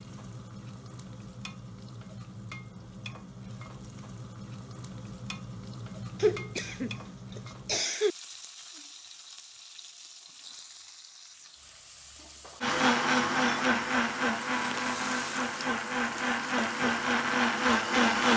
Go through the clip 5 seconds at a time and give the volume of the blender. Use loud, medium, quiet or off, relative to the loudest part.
off, off, loud, loud.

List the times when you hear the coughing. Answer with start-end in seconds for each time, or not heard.
6.2-8.2.